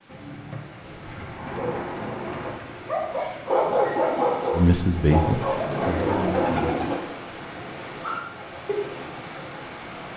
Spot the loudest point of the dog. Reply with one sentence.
The volume of the dog peaks at 4 seconds.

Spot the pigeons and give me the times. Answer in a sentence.
The pigeons can be heard from 0.1 to 3.0 s and from 5.5 to 7.0 s.